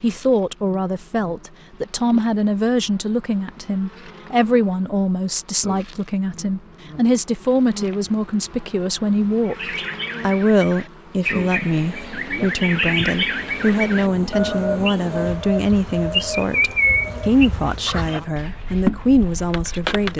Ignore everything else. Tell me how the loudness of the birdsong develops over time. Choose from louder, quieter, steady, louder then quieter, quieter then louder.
louder then quieter.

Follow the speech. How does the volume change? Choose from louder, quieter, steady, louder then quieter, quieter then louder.
steady.